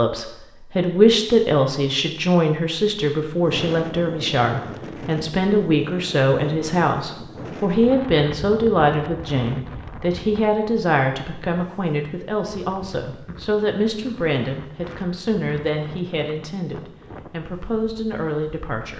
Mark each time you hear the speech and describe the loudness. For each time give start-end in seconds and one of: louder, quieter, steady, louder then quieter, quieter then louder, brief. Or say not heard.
0.0-18.9 quieter.